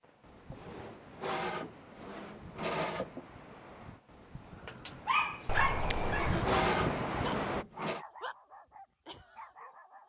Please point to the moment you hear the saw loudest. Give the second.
7 s.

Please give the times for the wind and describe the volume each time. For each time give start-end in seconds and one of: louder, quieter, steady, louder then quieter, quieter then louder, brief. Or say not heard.
0.0-7.7 louder.